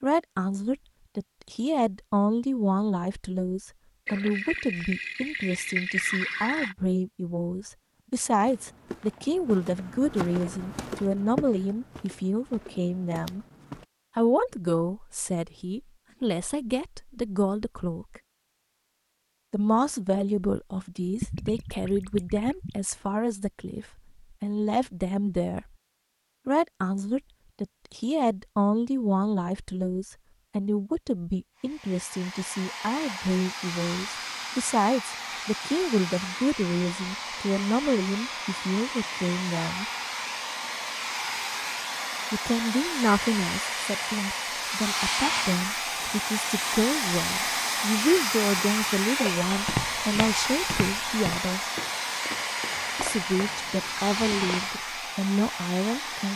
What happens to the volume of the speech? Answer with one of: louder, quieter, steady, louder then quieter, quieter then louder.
steady.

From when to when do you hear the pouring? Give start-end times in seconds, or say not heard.
4.0-6.8, 21.2-22.8, 52.5-54.5.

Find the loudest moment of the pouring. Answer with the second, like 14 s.
6 s.